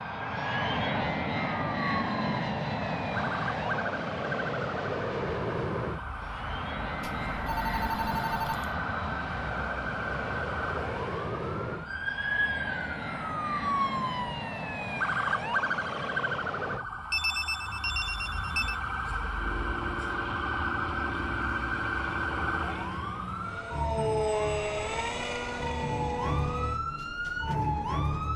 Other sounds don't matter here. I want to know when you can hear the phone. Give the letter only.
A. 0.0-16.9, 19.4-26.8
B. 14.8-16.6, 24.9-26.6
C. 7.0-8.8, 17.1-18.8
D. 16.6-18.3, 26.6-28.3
C.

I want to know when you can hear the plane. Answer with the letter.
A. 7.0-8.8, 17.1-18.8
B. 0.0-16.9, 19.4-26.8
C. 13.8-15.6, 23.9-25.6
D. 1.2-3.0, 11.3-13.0
B.